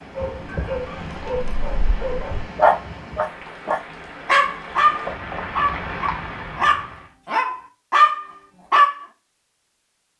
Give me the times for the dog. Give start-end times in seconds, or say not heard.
0.1-9.0.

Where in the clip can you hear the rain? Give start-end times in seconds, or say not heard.
0.0-7.2.